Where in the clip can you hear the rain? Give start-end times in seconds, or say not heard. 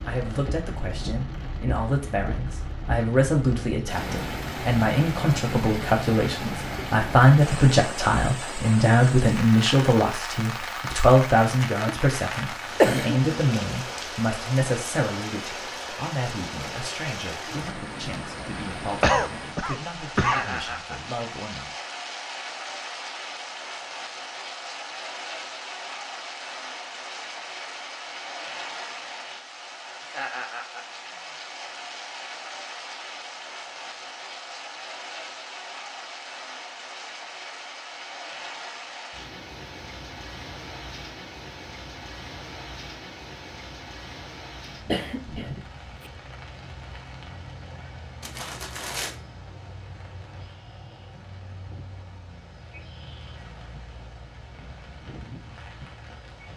0.0-56.5.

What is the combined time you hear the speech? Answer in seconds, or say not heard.
22 s.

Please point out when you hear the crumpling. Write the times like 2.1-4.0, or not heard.
48.2-49.1.